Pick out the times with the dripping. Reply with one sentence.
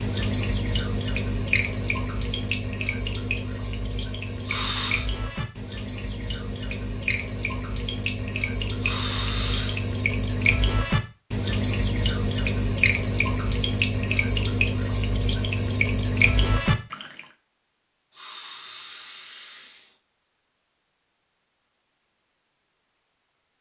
You can hear the dripping from 0.0 to 17.2 s.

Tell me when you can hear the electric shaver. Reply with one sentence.
You can't hear the electric shaver here.